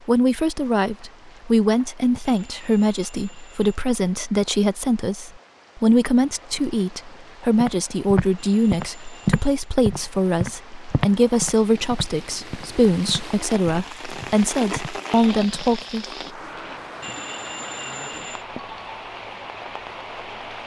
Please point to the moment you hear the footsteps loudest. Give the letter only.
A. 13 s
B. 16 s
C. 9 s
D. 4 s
C.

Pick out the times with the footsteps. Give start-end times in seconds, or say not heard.
7.6-15.7.